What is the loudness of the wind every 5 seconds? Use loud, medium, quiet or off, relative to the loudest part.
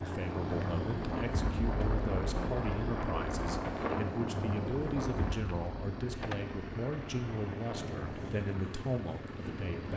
loud, medium.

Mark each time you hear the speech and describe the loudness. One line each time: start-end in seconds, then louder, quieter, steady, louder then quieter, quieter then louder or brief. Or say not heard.
0.0-9.9 steady.